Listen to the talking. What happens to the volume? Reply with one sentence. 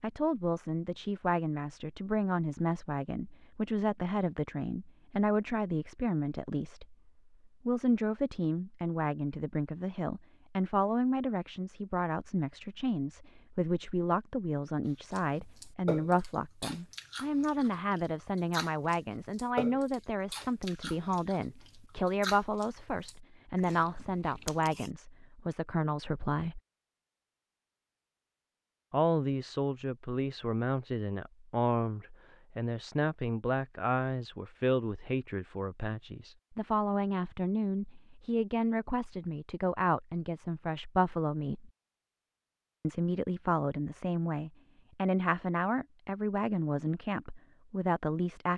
The loudness of the talking stays about the same.